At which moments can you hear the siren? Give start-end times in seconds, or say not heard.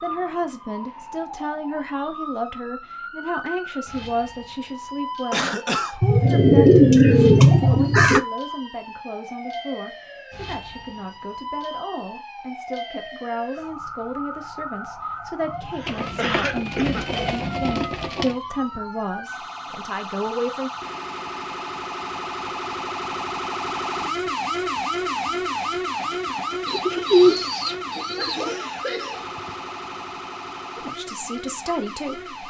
0.0-32.4.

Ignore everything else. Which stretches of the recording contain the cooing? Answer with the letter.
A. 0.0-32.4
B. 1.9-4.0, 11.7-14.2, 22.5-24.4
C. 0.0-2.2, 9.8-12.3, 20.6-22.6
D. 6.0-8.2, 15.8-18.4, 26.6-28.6
D.